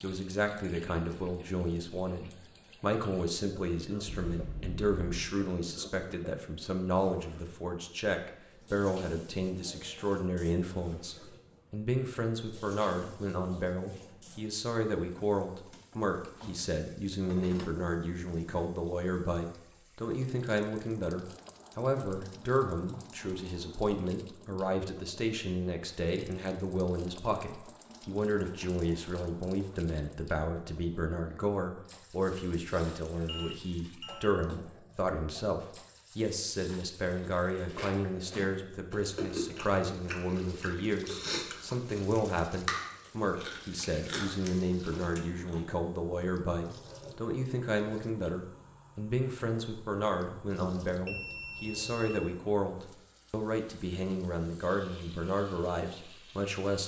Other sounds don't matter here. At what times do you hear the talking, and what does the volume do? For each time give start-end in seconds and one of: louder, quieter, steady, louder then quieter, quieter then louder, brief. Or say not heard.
0.0-56.8 steady.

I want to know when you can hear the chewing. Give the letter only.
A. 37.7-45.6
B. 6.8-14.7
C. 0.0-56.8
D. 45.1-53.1
A.